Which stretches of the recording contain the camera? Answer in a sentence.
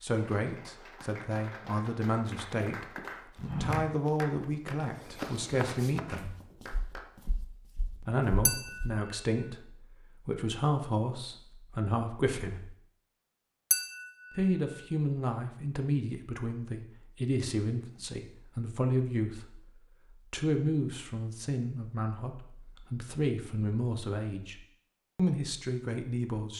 You can't hear the camera here.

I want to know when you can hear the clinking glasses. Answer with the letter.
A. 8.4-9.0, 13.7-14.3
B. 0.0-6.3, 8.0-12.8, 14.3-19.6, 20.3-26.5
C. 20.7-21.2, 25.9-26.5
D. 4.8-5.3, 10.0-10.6
A.